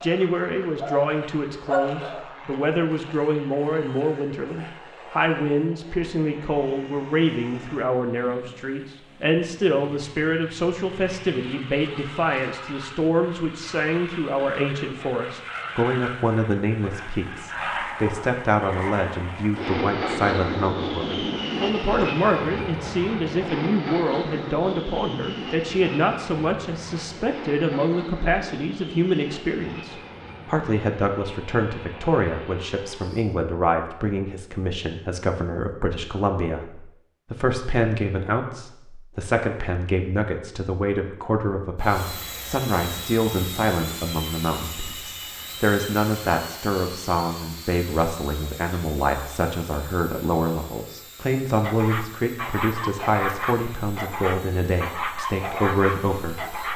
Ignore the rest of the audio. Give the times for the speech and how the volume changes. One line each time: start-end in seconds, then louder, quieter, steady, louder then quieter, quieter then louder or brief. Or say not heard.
0.0-56.7 steady.